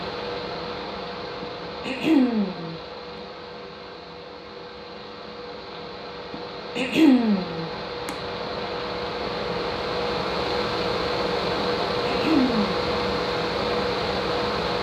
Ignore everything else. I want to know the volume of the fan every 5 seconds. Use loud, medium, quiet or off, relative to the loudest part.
medium, medium, loud.